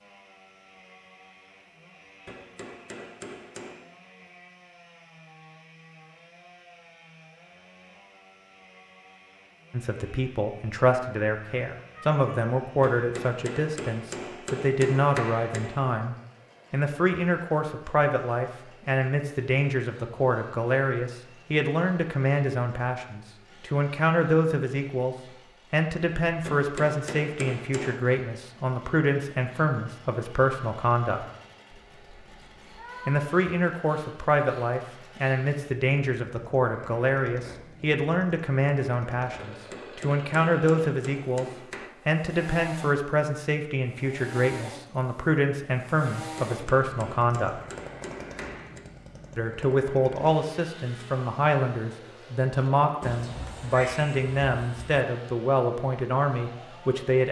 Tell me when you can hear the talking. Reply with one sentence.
You can hear the talking from 9.7 to 31.2 s, from 33.0 to 41.5 s, from 42.0 to 47.6 s and from 49.4 to 57.2 s.